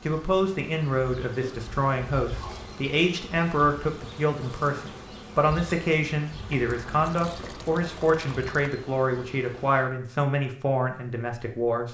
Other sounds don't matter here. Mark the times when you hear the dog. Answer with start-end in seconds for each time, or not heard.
not heard.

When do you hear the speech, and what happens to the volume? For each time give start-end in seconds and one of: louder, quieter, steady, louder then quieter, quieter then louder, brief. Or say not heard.
0.0-11.9 steady.